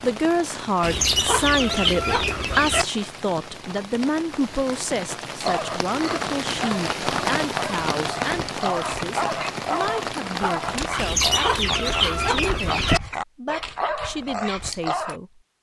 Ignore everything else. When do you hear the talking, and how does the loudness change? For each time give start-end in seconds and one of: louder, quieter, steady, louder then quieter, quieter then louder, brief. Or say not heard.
0.0-15.4 quieter.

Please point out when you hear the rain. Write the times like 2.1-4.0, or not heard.
0.0-11.1.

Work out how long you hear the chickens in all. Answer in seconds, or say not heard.
4 s.